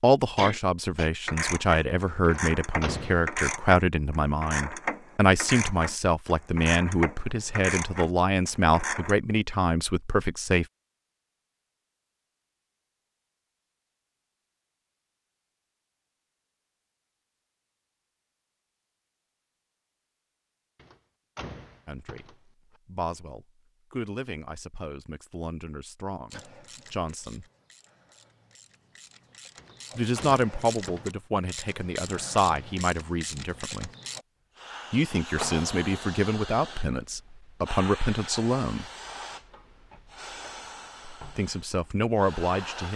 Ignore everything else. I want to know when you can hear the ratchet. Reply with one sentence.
The ratchet can be heard from 1.2 to 9.2 s and from 26.3 to 34.2 s.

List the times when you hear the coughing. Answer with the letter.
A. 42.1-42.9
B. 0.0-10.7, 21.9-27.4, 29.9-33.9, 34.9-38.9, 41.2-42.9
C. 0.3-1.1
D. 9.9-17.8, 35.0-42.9
C.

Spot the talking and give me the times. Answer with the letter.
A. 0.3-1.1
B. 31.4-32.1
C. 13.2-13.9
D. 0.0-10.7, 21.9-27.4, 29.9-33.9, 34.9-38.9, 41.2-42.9
D.